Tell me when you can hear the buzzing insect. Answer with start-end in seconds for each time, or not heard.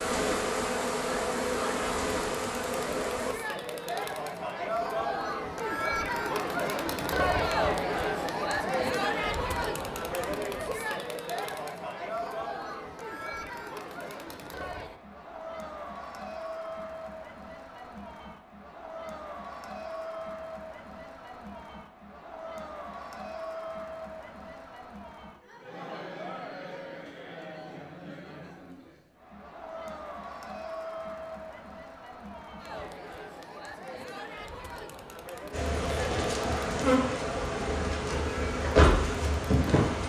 0.0-3.4, 35.5-40.0.